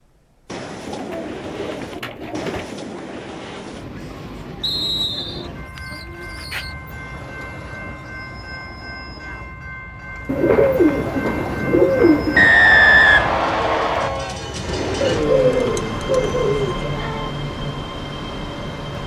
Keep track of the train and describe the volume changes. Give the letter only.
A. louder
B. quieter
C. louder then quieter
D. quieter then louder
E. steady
A.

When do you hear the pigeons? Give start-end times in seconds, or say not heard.
0.8-2.8, 5.2-6.8, 10.2-12.5, 15.0-16.8.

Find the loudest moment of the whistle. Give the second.
13 s.